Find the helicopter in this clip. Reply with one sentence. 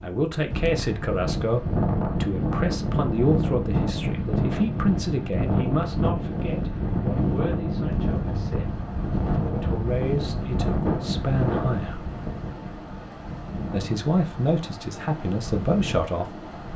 You can't hear the helicopter here.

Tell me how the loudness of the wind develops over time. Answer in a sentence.
The loudness of the wind goes down.